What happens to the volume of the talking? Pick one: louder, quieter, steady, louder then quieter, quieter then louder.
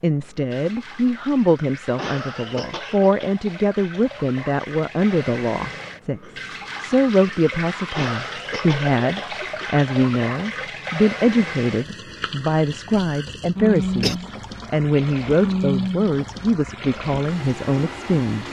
steady.